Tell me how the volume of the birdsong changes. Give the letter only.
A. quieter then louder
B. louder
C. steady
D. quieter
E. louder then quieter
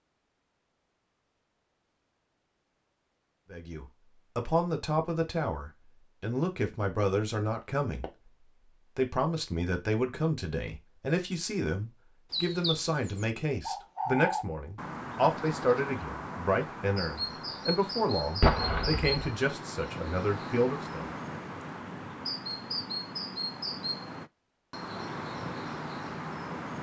C.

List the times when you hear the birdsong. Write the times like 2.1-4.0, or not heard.
12.3-26.7.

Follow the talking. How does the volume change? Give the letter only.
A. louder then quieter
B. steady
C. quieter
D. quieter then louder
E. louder
B.